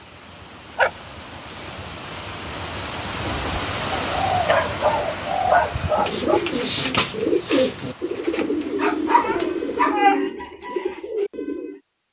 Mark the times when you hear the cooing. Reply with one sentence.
You can hear the cooing from 3.1 to 11.8 s.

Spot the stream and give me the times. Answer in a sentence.
The stream can be heard from 0.0 to 9.9 s.